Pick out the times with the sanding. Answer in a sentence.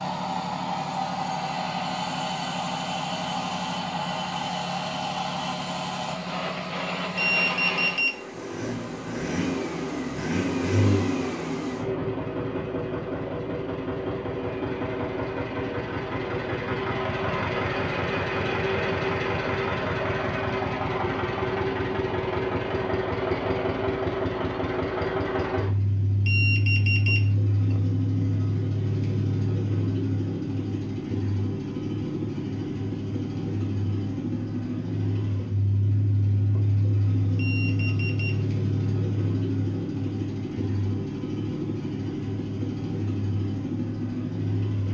The sanding can't be heard in this clip.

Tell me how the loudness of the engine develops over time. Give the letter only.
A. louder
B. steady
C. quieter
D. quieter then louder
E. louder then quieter
B.